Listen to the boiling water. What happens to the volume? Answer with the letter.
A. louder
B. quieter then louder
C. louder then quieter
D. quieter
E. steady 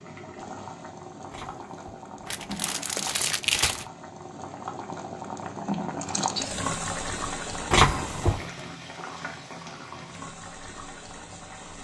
C.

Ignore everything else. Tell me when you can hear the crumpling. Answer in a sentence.
The crumpling can be heard from 1.3 to 3.9 s and from 7.7 to 8.5 s.